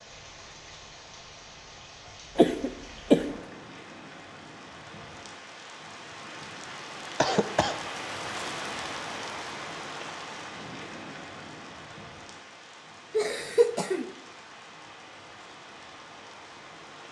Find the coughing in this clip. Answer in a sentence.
You can hear the coughing from 2.4 to 3.2 s, from 7.2 to 7.8 s and from 13.1 to 14.1 s.